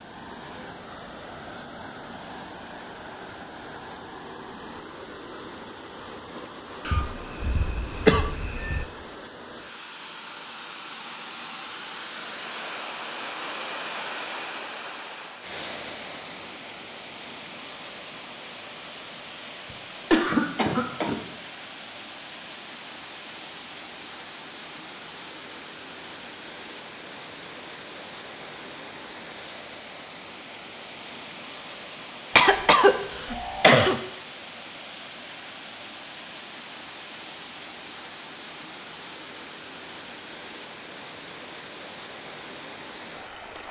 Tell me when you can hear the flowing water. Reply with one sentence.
The flowing water can be heard from 0.0 to 43.6 s.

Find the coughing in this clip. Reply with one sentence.
You can hear the coughing from 6.8 to 8.8 s, from 19.7 to 21.2 s and from 32.4 to 34.0 s.